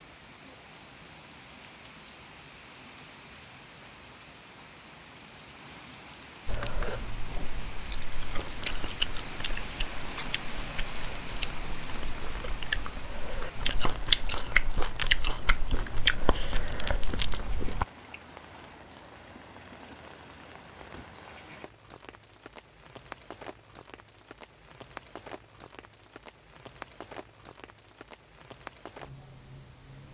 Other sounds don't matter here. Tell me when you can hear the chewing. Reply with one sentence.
You can hear the chewing from 6.5 to 17.9 s.